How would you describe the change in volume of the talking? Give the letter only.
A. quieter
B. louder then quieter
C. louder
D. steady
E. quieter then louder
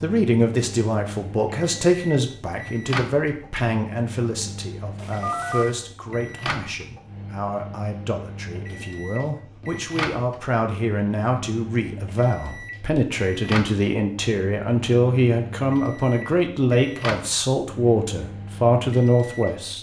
E.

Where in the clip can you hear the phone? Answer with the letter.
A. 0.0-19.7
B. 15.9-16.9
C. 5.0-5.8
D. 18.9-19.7
C.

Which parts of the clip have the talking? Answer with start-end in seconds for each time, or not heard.
0.0-19.7.